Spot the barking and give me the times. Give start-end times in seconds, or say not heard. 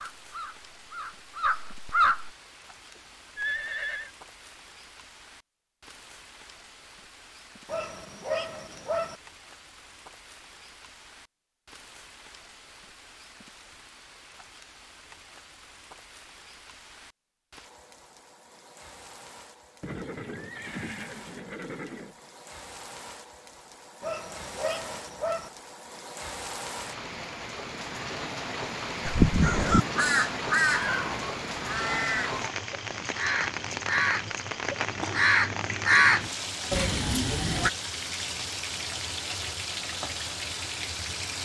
7.7-9.2, 24.0-25.5.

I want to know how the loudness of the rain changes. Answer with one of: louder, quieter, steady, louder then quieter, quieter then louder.
louder.